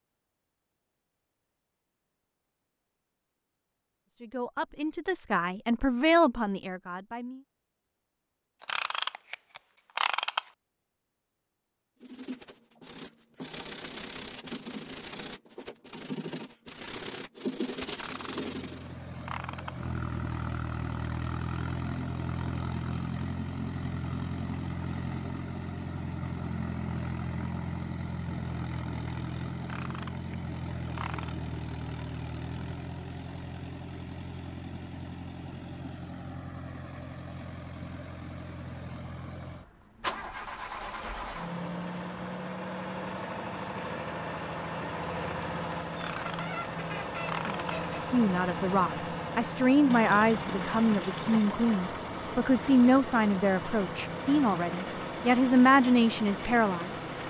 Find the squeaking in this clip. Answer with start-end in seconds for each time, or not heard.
46.0-48.0.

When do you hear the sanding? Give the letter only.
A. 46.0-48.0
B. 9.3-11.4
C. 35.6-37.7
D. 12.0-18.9
D.